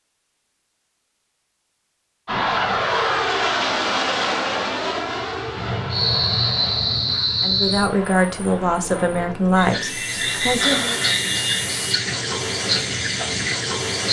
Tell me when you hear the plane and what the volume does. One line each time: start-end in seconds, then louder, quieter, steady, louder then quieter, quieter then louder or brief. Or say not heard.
2.2-11.8 quieter.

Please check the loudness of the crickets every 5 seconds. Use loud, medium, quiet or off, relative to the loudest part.
off, loud, loud.